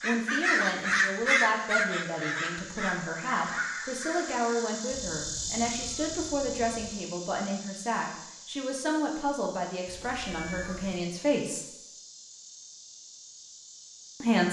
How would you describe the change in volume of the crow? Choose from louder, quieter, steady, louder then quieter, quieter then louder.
quieter.